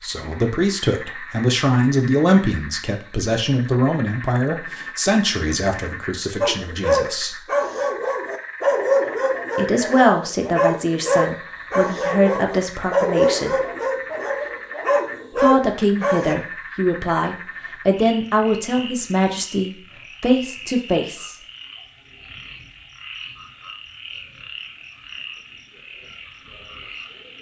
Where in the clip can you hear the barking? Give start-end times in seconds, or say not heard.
6.4-16.4.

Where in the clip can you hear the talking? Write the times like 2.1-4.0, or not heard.
0.0-7.4, 9.6-13.6, 15.3-21.4.